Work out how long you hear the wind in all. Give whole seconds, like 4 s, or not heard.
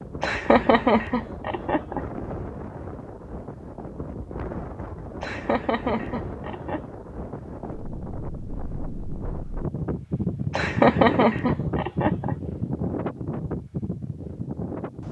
15 s.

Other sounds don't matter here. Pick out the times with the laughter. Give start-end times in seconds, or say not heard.
0.2-2.0, 5.2-6.8, 10.5-12.3.